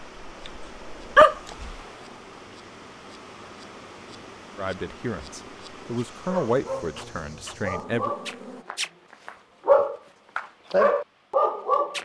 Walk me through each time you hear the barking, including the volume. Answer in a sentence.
The barking can be heard briefly from 0.2 to 1.8 s; and from 6.0 to 12.0 s, getting louder.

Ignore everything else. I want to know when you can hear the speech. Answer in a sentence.
The speech can be heard from 4.5 to 8.1 s.